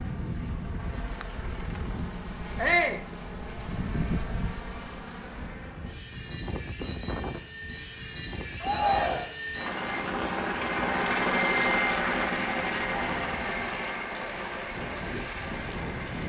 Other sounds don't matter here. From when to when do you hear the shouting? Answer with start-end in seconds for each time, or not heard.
2.5-3.0, 8.6-9.3.